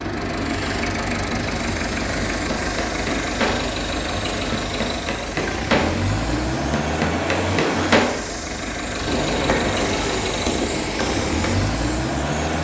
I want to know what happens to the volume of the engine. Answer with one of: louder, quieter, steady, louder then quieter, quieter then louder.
steady.